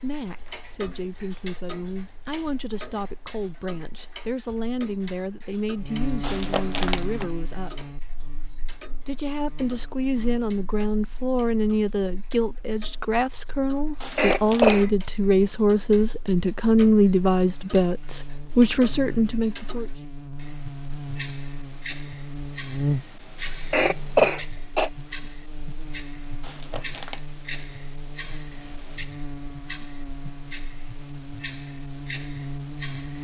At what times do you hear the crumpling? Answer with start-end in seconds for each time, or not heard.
6.2-7.3, 14.0-14.9, 26.4-27.2.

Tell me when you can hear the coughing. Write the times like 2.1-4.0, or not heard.
14.2-14.9, 23.7-24.9.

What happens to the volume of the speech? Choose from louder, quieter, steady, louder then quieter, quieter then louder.
louder.